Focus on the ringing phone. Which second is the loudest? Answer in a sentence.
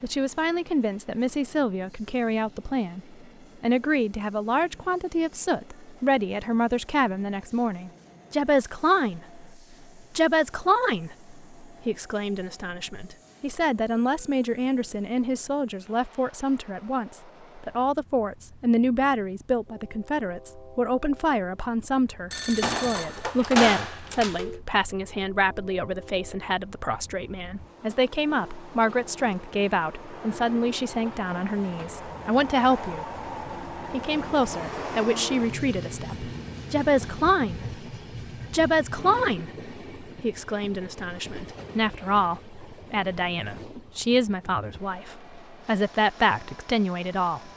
The volume of the ringing phone peaks at 24 seconds.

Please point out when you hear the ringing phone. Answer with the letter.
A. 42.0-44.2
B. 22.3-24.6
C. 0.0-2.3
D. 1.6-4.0
B.